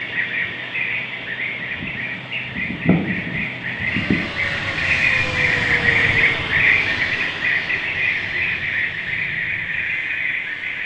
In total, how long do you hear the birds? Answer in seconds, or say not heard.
11 s.